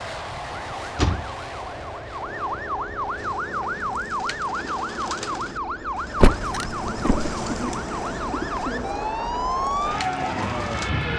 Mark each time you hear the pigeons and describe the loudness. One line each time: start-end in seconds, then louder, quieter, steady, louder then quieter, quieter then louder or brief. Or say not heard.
3.1-10.9 louder then quieter.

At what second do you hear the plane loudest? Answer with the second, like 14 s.
11 s.